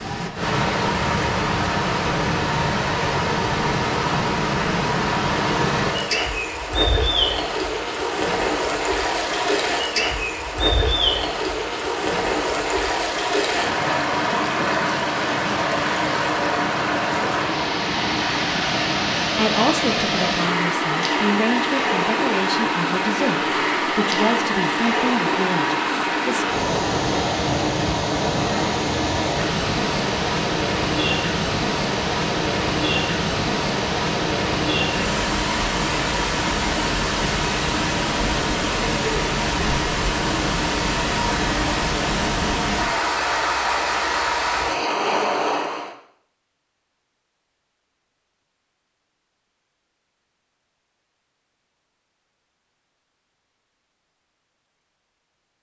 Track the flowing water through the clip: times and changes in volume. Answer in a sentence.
The flowing water can be heard from 0.0 to 46.0 s, at a steady volume.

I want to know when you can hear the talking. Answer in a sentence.
The talking can be heard from 19.4 to 26.4 s.